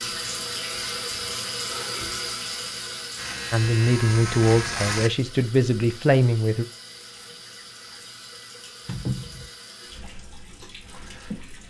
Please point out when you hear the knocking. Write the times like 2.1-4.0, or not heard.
8.8-9.5.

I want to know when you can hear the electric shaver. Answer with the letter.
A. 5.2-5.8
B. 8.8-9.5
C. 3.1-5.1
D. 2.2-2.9
C.